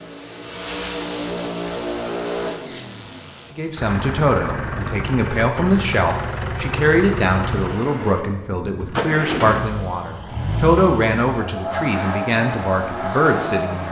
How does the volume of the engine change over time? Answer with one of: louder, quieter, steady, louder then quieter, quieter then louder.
steady.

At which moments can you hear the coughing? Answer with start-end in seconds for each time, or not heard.
not heard.